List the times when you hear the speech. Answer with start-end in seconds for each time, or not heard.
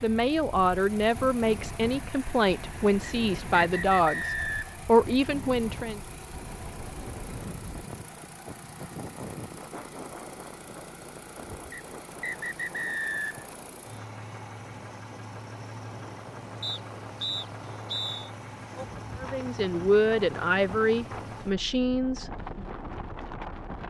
0.0-6.0, 19.2-22.6.